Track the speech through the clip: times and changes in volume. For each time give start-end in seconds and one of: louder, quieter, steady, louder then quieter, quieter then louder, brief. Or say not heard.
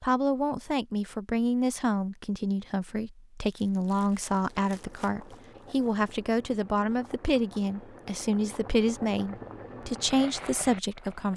0.0-11.3 steady.